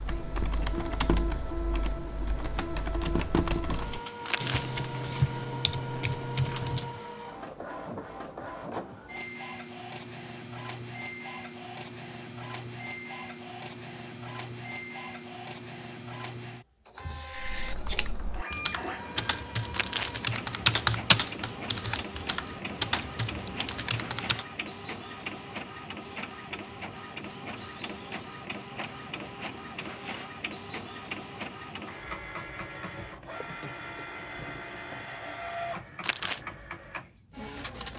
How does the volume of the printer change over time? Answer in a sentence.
The volume of the printer stays about the same.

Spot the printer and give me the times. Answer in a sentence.
You can hear the printer from 0.0 to 37.9 s.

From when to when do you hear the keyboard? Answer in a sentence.
The keyboard can be heard from 0.0 to 7.0 s and from 17.4 to 24.4 s.